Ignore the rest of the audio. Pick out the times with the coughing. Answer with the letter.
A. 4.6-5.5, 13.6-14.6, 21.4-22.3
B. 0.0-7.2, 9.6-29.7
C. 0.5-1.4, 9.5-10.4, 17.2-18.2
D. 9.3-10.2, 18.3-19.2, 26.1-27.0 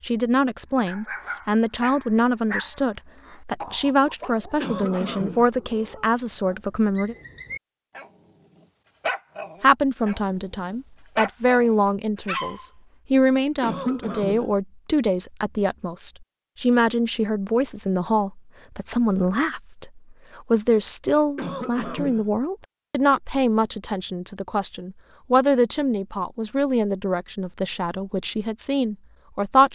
A.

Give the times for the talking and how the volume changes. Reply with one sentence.
The talking can be heard from 0.0 to 7.2 s, at a steady volume; and from 9.6 to 29.7 s, at a steady volume.